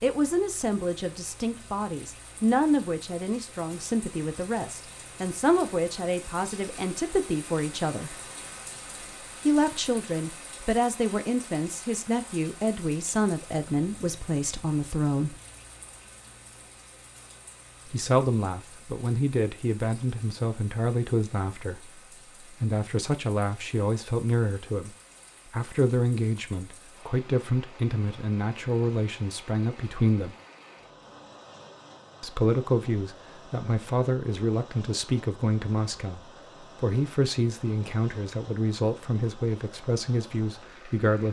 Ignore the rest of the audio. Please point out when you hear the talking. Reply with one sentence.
You can hear the talking from 0.0 to 8.2 s, from 9.4 to 15.4 s, from 17.9 to 30.4 s and from 32.2 to 41.2 s.